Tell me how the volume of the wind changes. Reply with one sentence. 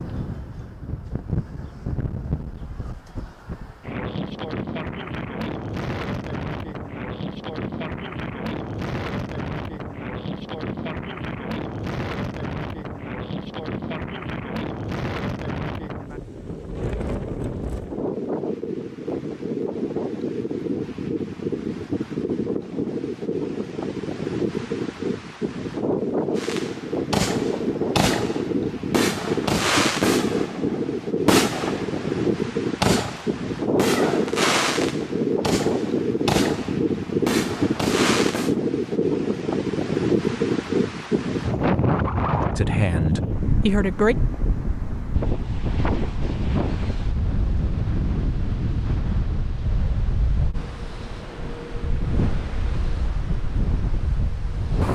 The volume of the wind goes up, then down.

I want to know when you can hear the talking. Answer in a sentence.
The talking can be heard from 42.5 to 44.1 s.